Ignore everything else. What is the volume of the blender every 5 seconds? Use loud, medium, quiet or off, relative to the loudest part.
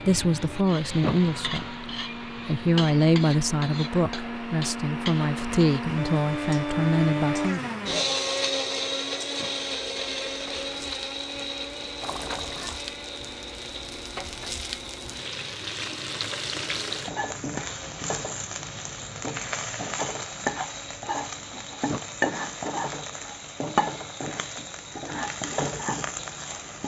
medium, loud, medium, quiet, quiet, quiet.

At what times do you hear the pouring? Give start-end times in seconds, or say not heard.
12.0-12.8.